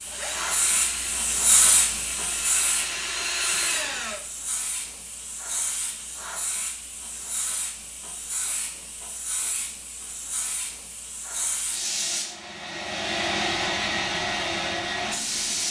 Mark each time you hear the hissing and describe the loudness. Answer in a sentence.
The hissing can be heard from 0.0 to 15.6 s, getting quieter then louder.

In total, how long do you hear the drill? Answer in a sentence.
The drill can be heard for 4 seconds in total.